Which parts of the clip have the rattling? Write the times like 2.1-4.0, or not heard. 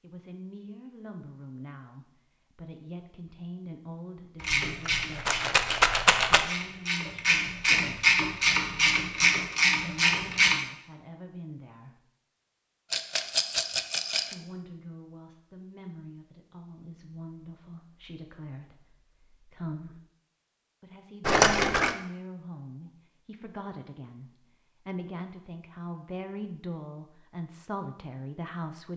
4.7-6.5, 12.9-14.3, 21.2-21.9.